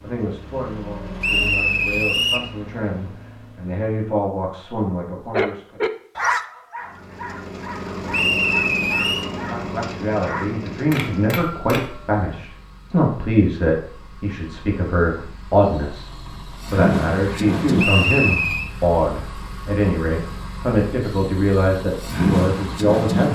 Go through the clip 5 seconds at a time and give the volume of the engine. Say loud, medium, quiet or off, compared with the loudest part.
quiet, medium, quiet, loud, loud.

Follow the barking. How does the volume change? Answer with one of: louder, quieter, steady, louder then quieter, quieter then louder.
quieter.